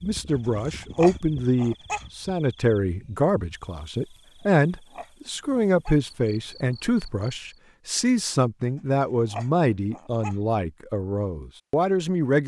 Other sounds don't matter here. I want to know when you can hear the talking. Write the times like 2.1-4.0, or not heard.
0.0-12.4.